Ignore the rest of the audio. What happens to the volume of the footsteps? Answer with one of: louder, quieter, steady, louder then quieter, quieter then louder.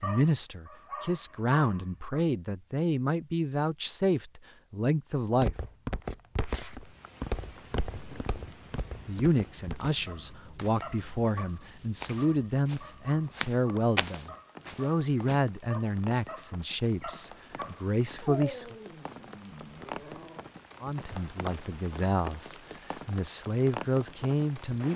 quieter then louder.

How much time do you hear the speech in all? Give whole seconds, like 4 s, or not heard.
19 s.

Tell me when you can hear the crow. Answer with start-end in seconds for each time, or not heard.
not heard.